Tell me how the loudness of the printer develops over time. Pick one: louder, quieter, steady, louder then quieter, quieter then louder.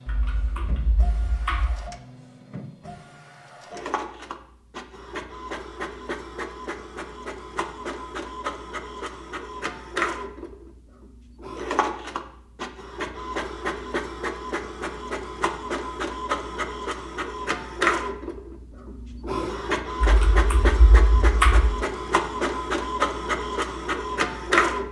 louder.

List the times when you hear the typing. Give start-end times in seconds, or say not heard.
0.1-1.8, 20.0-21.8.